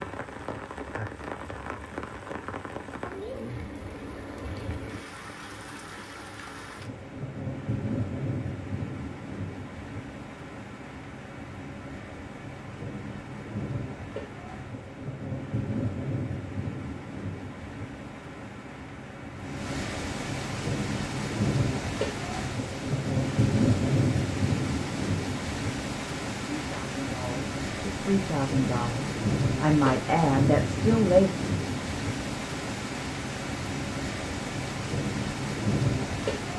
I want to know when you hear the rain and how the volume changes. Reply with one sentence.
The rain can be heard from 0.0 to 36.5 s, getting louder.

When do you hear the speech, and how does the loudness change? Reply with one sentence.
The speech can be heard from 26.6 to 31.3 s, getting louder.